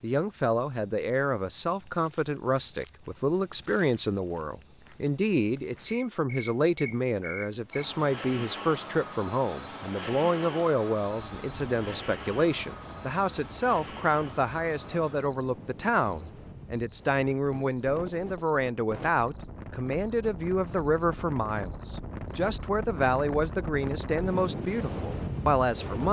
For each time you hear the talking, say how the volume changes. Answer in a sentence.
You can hear the talking from 0.0 to 26.0 s, at a steady volume.